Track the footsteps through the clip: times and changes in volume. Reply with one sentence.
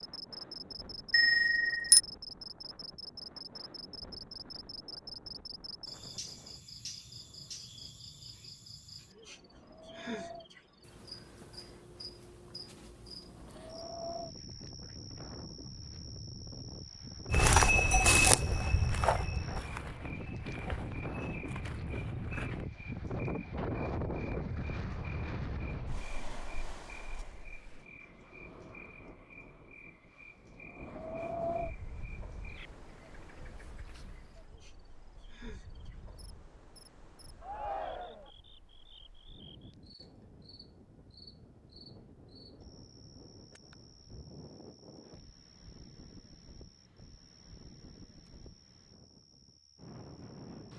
You can hear the footsteps from 17.3 to 22.6 s, getting quieter.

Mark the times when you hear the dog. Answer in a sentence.
You can't hear the dog here.